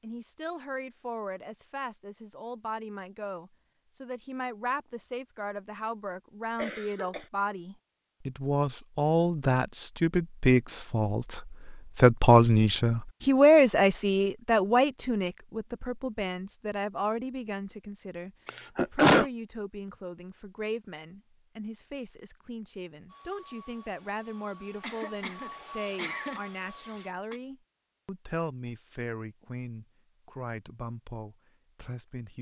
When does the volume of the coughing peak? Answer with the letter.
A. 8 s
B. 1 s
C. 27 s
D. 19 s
D.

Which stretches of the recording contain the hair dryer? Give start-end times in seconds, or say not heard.
23.1-27.1.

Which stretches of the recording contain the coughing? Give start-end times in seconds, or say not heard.
6.5-7.2, 18.4-19.2, 24.8-27.4.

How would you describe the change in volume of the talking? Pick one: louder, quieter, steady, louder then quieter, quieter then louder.
louder then quieter.